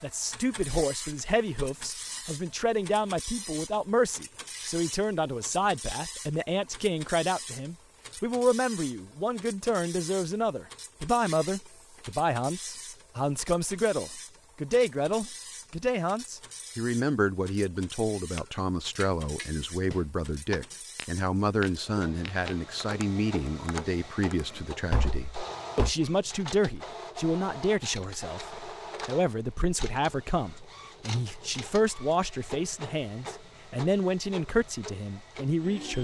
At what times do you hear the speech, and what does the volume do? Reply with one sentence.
The speech can be heard from 0.0 to 35.9 s, at a steady volume.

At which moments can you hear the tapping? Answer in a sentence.
The tapping can be heard from 18.4 to 25.9 s.